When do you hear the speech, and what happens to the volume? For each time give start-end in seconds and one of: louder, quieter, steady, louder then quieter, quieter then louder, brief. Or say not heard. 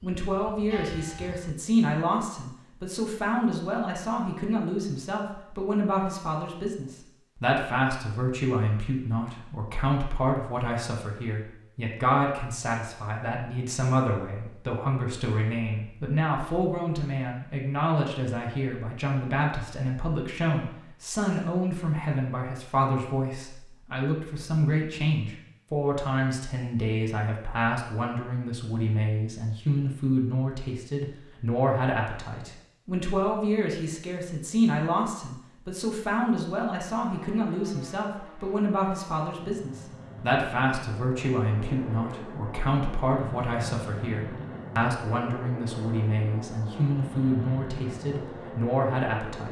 0.0-49.4 steady.